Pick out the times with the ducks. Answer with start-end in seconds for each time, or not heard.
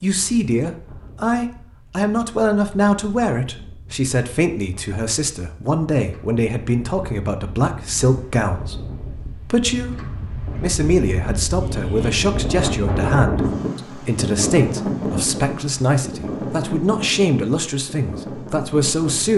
not heard.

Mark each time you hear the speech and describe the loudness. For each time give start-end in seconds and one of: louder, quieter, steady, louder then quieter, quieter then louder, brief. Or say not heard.
0.0-19.3 steady.